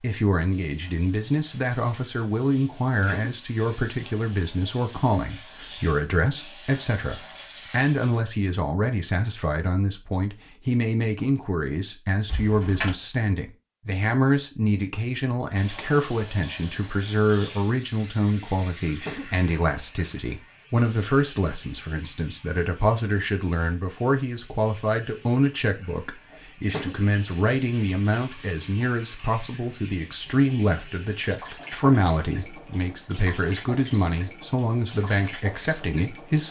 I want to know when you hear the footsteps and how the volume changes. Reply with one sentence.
The footsteps can't be heard in this clip.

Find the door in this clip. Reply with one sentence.
You can hear the door from 12.2 to 12.9 s.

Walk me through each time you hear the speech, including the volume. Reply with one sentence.
You can hear the speech from 0.0 to 36.4 s, at a steady volume.